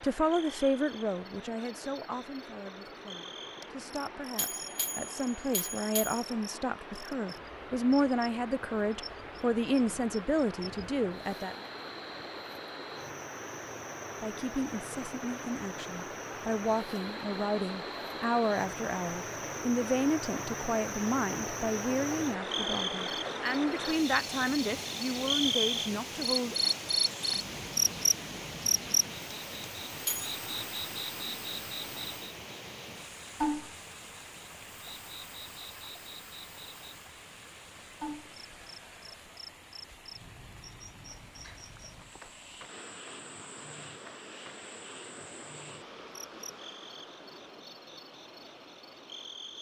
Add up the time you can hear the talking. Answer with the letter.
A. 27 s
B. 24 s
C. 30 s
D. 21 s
B.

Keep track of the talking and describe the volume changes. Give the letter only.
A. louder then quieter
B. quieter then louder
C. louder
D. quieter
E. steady
E.